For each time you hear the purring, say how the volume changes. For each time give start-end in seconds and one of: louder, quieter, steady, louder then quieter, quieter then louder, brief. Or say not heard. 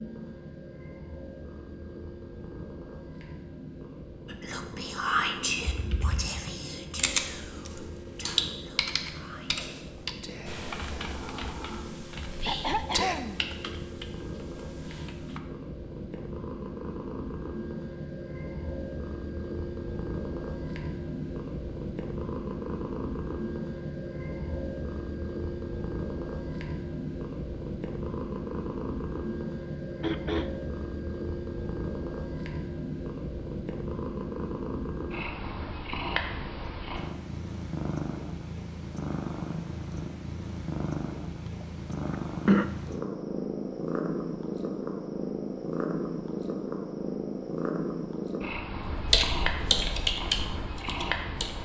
0.0-51.6 louder.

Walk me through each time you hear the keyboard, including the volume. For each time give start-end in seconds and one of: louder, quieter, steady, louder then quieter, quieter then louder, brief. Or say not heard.
5.6-15.4 quieter
48.9-51.6 brief.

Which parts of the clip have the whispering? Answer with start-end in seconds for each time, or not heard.
4.2-13.2.